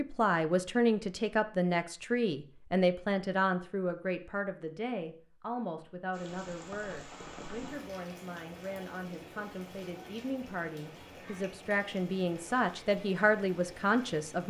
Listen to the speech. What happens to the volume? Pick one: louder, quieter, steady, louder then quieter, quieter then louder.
quieter then louder.